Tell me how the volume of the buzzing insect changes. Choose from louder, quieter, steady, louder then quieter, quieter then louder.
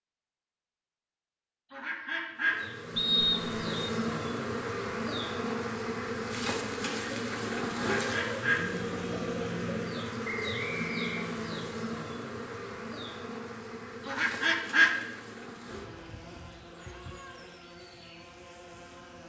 quieter.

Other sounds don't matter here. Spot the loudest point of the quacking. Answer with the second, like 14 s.
15 s.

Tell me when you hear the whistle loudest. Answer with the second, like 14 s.
3 s.